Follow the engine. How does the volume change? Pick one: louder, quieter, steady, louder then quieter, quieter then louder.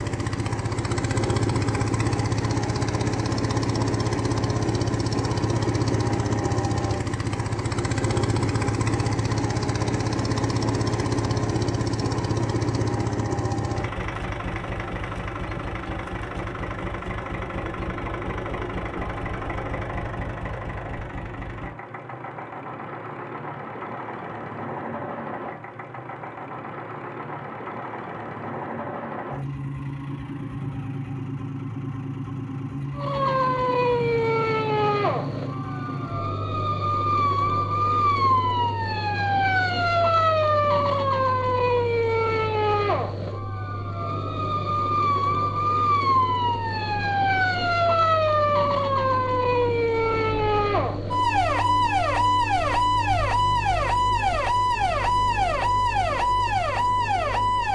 quieter.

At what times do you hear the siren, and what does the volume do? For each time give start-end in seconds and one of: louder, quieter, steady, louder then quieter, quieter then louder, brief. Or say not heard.
33.0-57.6 steady.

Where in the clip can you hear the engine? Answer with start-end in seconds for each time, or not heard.
0.0-57.6.